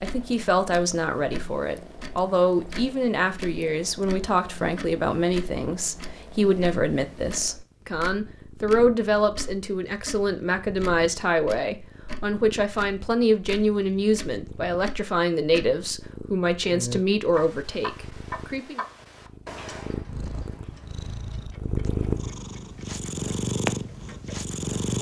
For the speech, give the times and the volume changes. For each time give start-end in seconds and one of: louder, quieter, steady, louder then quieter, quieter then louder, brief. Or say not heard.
0.0-18.8 steady.